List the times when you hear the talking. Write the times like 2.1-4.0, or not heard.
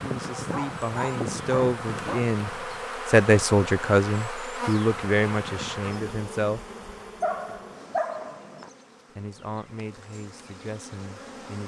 0.0-6.7, 9.2-11.6.